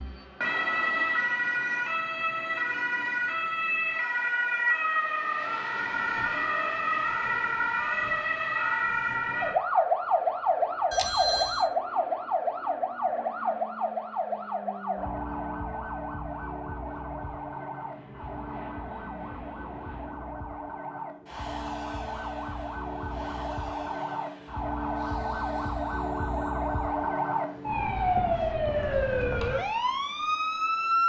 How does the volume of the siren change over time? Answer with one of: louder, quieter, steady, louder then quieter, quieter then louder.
quieter then louder.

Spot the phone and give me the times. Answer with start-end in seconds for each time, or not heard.
10.9-11.7.